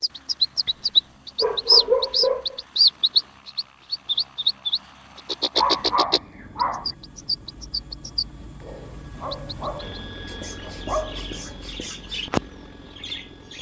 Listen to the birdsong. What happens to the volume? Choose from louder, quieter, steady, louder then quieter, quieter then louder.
quieter then louder.